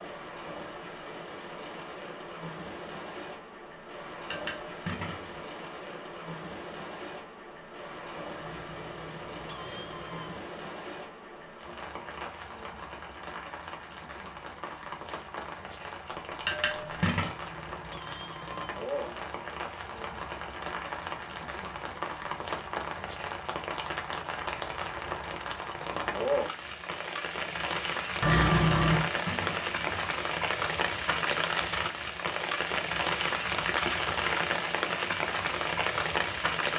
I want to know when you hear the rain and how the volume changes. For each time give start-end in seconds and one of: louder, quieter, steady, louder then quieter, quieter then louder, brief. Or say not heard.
0.0-36.7 louder.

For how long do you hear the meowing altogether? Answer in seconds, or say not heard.
5 s.